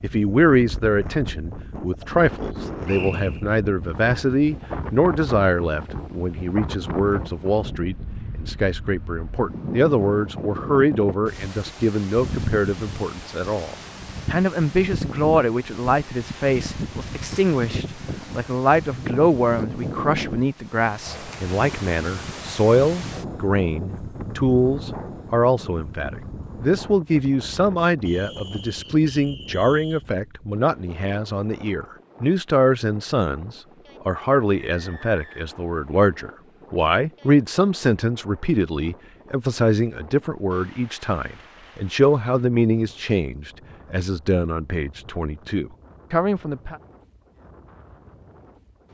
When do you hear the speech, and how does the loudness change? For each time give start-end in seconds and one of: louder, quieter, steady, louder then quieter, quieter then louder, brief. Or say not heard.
0.0-46.8 steady.